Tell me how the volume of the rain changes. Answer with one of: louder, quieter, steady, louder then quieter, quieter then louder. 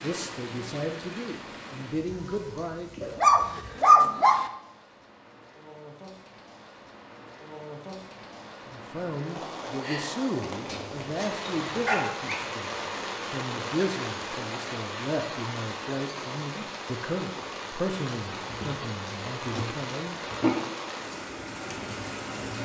louder.